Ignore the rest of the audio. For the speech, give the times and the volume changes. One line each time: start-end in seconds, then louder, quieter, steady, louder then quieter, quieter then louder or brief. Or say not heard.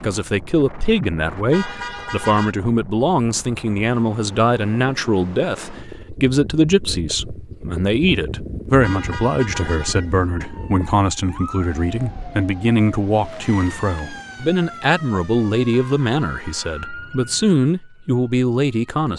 0.0-19.1 steady.